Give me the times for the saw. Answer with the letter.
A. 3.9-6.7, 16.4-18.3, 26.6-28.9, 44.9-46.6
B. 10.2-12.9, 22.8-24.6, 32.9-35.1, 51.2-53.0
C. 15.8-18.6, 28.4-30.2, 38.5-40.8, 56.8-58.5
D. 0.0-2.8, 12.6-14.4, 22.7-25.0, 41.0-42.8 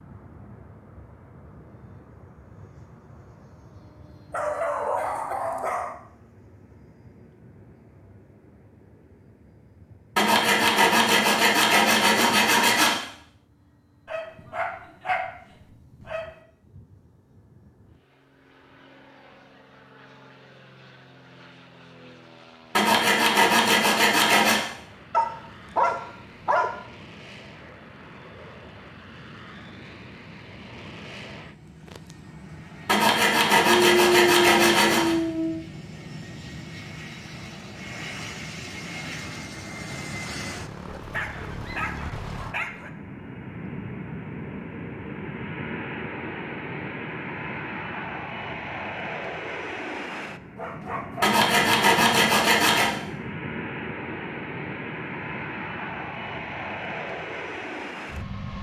B.